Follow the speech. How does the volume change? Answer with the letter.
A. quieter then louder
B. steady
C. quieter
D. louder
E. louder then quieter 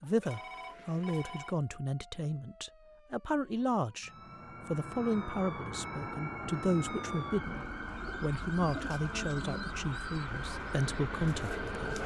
B.